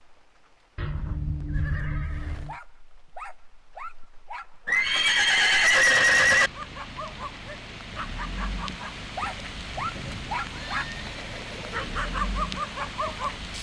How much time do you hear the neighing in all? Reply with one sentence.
You can hear the neighing for 5 seconds altogether.